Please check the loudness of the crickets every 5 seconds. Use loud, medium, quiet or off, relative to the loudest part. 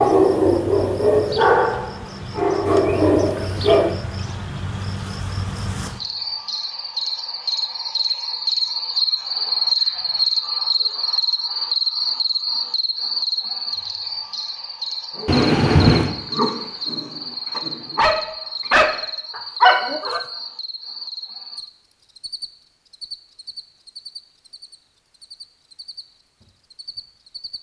medium, loud, loud, medium, quiet, quiet.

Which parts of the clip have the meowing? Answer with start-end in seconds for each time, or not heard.
15.2-16.1.